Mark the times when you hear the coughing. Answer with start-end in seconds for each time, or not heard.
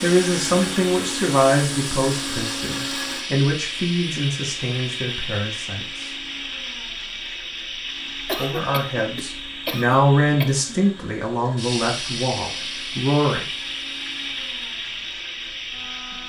8.2-10.7.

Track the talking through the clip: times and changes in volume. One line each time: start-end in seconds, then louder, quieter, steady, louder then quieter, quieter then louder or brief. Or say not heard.
0.0-6.1 quieter
8.3-13.4 louder then quieter.